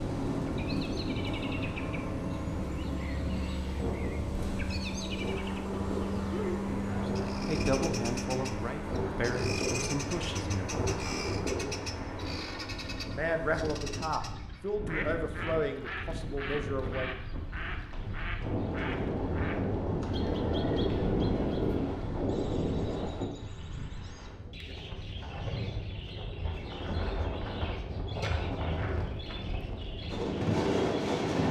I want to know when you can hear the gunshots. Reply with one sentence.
You can't hear the gunshots here.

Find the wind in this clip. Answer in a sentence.
You can hear the wind from 0.0 to 31.4 s.